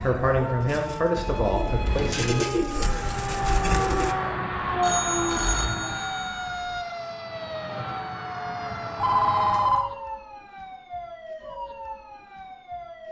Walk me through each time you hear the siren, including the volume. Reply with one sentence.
You can hear the siren from 0.0 to 13.0 s, getting louder then quieter.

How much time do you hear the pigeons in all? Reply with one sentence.
The pigeons can be heard for 4 seconds in total.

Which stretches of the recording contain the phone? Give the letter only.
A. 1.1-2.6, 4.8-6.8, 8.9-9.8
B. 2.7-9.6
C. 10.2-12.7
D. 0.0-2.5
A.